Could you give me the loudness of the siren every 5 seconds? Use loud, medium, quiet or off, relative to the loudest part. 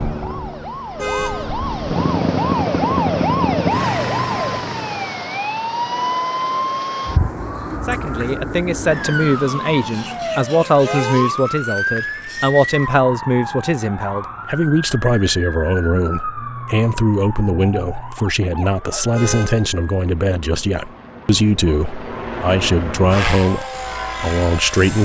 loud, loud, loud, medium, quiet.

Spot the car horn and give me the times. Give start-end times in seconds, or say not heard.
0.9-1.6, 10.8-11.4, 19.1-19.7.